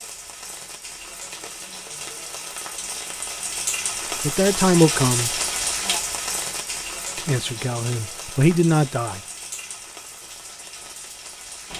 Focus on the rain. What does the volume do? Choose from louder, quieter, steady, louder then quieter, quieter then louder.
louder then quieter.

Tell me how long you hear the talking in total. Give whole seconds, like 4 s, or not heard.
3 s.